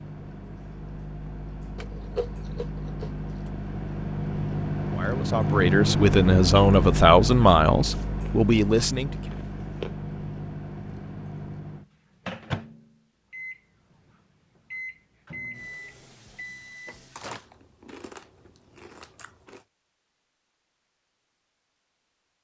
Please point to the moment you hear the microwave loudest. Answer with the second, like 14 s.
6 s.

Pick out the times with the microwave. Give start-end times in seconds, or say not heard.
0.0-17.4.